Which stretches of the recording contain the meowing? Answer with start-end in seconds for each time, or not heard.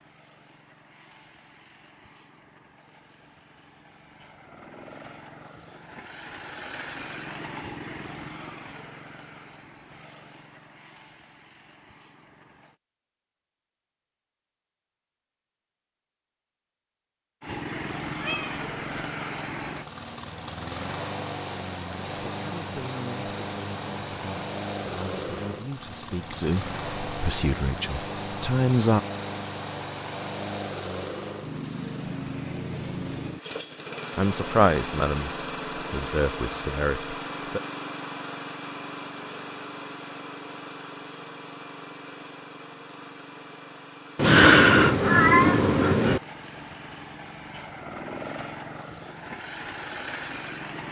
18.2-19.1, 44.1-46.2.